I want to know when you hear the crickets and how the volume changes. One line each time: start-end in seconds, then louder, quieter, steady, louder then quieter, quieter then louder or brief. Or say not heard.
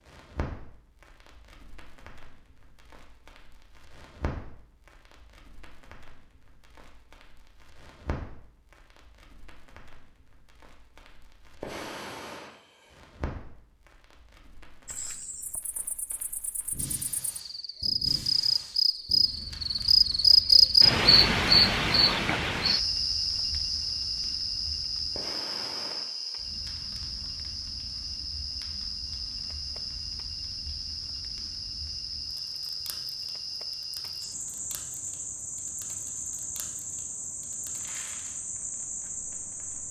14.8-39.8 louder then quieter.